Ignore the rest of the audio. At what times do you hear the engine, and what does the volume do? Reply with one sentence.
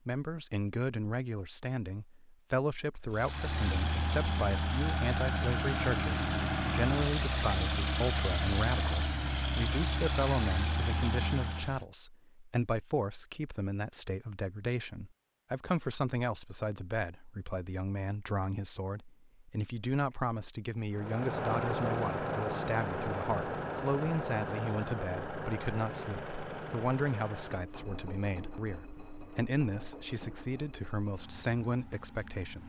You can hear the engine from 3.1 to 11.8 s, at a steady volume; and from 20.9 to 32.6 s, getting quieter.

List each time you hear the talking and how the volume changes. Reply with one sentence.
You can hear the talking from 0.1 to 32.6 s, at a steady volume.